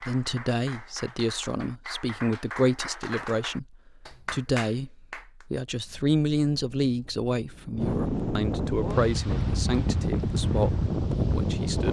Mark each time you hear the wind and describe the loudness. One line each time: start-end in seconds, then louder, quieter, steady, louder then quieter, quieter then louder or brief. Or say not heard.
5.7-11.8 louder.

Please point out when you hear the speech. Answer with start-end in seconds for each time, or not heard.
0.0-11.8.